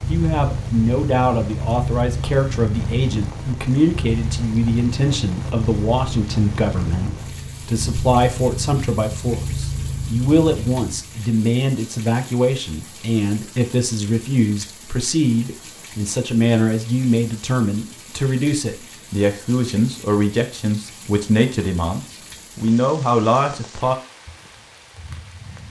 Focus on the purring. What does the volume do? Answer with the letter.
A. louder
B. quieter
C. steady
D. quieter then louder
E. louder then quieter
C.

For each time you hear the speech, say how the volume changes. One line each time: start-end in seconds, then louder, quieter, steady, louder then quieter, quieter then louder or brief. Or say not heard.
0.1-23.9 steady.